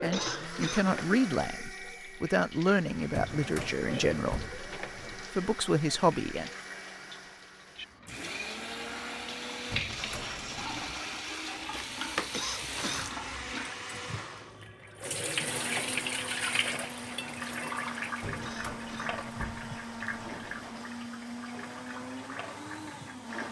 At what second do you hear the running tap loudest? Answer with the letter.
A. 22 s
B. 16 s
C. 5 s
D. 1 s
B.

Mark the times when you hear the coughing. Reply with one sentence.
You can hear the coughing from 0.1 to 0.9 s, from 12.3 to 13.1 s and from 18.4 to 19.2 s.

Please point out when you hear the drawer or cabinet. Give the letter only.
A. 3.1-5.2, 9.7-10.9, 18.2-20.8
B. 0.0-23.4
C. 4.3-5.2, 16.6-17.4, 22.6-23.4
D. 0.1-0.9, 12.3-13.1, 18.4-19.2
A.